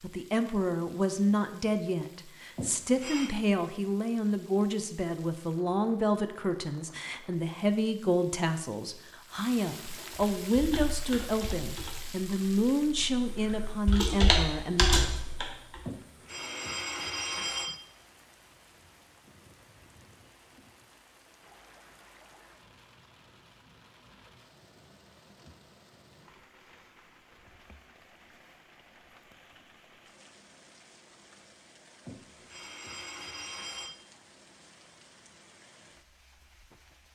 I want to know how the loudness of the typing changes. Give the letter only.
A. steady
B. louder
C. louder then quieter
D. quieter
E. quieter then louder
E.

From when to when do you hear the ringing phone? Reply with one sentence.
You can hear the ringing phone from 2.5 to 3.4 s, from 15.8 to 17.8 s and from 32.0 to 34.0 s.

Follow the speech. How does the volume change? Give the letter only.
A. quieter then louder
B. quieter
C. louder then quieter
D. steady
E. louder
D.